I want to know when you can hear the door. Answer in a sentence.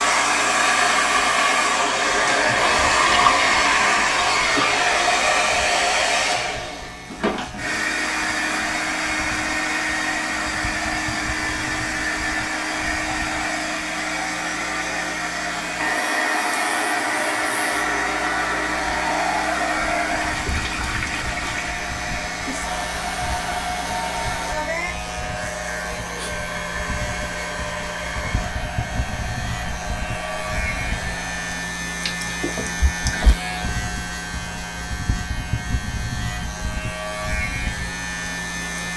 The door can't be heard in this clip.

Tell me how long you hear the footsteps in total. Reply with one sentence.
The footsteps can't be heard in this clip.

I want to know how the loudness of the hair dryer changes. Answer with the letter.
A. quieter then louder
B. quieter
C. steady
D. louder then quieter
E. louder
B.